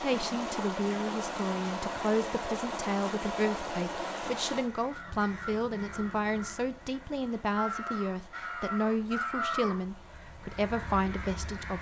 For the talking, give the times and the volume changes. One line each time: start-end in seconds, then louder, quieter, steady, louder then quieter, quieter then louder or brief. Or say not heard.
0.0-11.7 steady.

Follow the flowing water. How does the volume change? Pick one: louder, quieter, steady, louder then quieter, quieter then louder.
quieter.